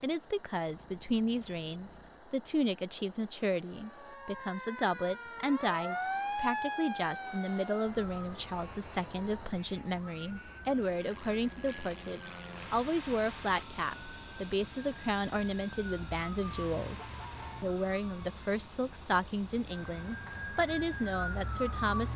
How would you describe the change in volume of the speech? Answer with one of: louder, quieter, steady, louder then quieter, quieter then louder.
steady.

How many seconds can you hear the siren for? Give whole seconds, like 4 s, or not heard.
18 s.